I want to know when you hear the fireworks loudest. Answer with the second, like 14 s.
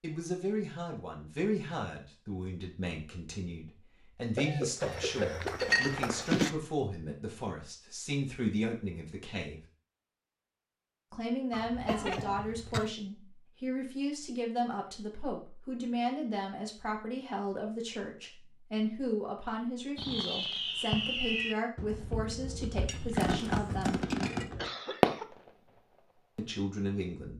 25 s.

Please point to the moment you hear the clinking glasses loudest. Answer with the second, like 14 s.
6 s.